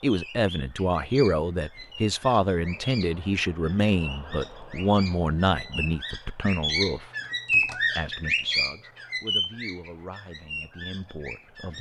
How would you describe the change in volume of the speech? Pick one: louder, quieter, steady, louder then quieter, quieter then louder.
quieter.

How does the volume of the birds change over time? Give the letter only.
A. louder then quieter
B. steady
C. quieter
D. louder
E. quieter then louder
A.